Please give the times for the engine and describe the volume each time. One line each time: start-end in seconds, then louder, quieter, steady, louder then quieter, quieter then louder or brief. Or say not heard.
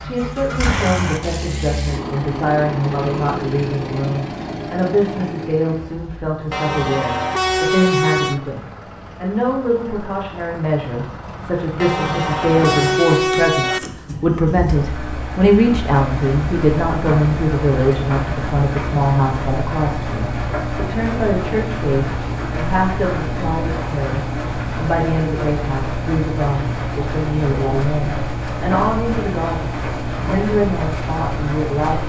0.0-32.0 quieter then louder.